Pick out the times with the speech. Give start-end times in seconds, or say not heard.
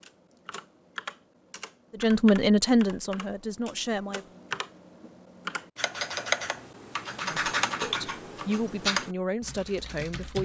1.9-4.2, 7.2-10.4.